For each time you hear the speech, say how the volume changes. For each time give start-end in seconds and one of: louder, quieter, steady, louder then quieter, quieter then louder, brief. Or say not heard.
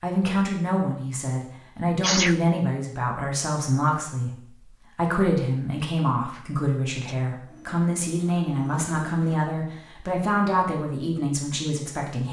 0.0-12.2 steady.